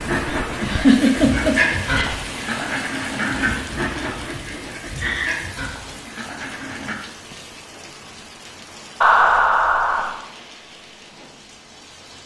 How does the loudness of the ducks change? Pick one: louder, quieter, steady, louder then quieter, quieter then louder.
quieter.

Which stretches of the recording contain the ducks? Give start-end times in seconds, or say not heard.
0.0-7.0.